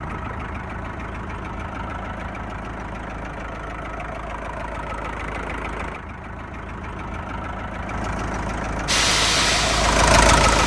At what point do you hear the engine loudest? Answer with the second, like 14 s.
10 s.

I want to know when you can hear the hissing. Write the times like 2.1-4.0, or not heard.
8.8-10.6.